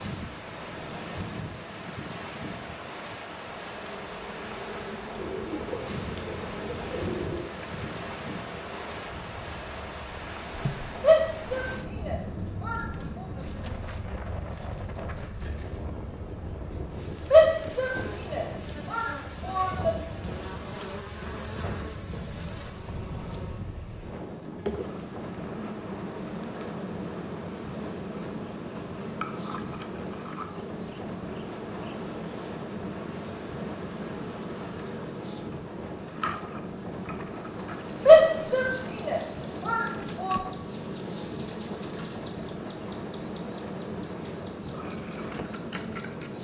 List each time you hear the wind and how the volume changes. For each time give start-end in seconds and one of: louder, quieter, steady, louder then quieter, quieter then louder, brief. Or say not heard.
0.0-46.4 steady.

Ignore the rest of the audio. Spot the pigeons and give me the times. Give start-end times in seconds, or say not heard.
5.2-7.5.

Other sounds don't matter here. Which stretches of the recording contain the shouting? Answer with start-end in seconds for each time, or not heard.
11.0-13.2, 17.3-19.9, 38.0-40.4.